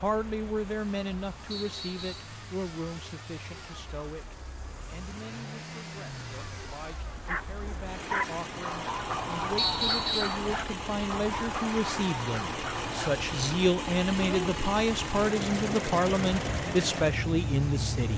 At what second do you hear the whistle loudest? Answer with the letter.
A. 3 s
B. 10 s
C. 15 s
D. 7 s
B.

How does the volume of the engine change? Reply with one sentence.
The volume of the engine goes up.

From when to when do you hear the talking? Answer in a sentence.
You can hear the talking from 0.0 to 18.1 s.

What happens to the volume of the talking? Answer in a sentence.
The volume of the talking goes down, then up.